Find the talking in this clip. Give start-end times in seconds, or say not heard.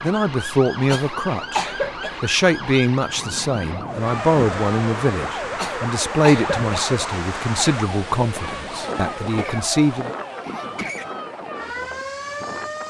0.0-10.1.